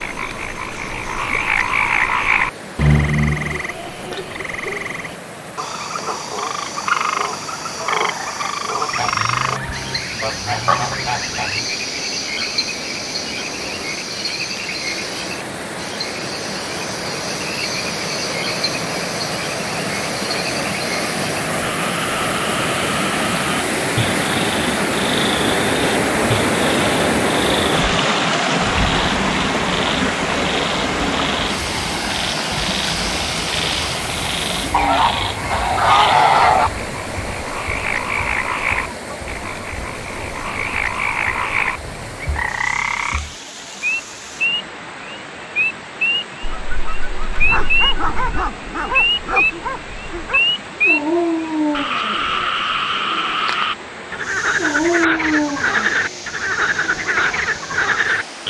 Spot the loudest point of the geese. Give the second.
36 s.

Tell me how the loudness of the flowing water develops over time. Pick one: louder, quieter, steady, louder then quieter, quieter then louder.
louder then quieter.